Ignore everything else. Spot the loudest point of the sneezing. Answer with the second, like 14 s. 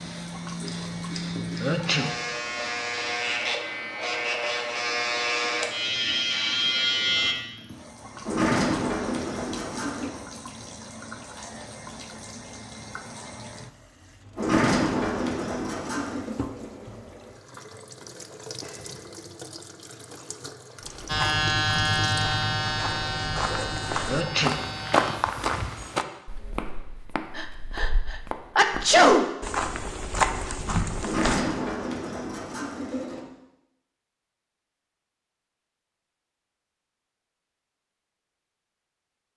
29 s.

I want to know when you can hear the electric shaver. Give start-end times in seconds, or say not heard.
0.0-7.3, 21.1-25.2.